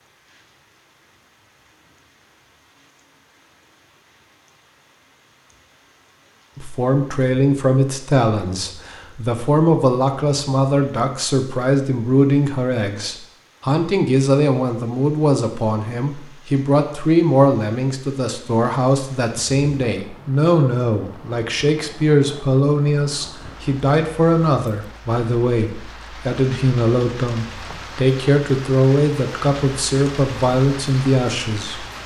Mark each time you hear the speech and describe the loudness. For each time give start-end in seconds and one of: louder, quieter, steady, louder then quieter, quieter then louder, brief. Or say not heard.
6.5-31.9 steady.